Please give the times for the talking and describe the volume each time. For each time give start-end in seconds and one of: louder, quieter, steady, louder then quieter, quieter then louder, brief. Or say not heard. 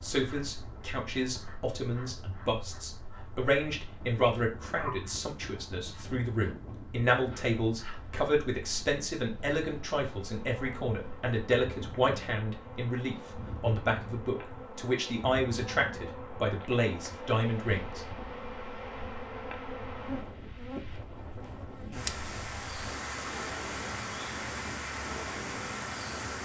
0.0-18.1 steady.